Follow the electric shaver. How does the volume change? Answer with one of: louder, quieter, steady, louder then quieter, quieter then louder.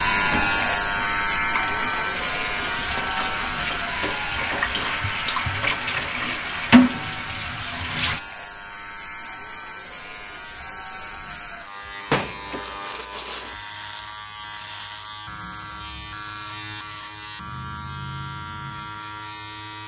quieter.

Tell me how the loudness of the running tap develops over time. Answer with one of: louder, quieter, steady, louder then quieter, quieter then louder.
louder.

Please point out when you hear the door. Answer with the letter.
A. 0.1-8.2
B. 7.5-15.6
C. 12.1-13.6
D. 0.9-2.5
C.